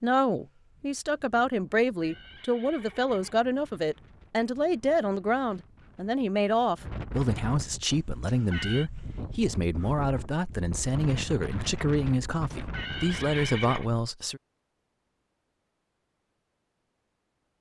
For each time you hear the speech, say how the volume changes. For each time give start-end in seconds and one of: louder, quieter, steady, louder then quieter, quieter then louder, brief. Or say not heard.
0.0-14.4 steady.